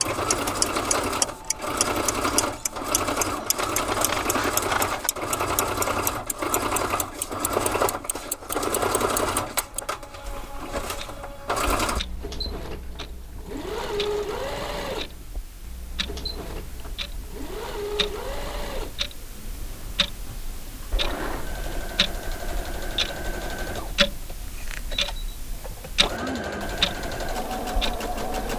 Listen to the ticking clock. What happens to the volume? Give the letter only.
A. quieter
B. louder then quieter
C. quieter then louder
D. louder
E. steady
C.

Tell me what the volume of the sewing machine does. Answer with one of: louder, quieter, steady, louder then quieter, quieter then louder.
quieter.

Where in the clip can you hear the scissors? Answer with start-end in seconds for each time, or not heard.
3.4-5.1.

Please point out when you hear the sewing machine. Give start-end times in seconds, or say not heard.
0.0-28.5.